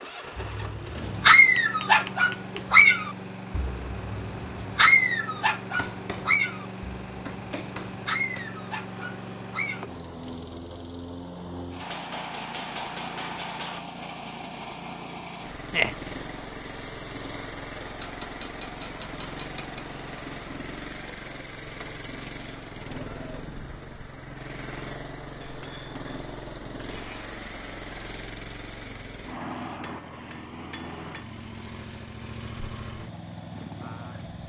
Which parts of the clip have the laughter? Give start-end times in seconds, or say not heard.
15.7-16.1.